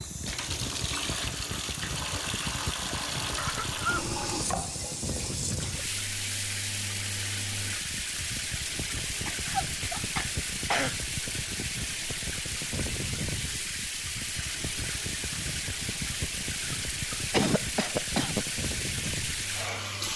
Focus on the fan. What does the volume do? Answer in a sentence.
The loudness of the fan stays about the same.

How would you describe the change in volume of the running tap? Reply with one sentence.
The volume of the running tap stays about the same.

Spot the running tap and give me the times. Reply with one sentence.
The running tap can be heard from 0.0 to 20.1 s.